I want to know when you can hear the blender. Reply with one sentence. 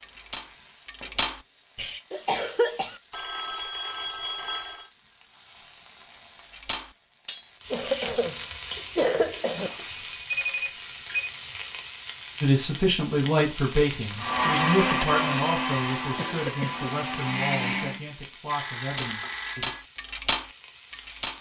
You can hear the blender from 14.2 to 18.0 s.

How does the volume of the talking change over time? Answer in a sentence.
The loudness of the talking goes down.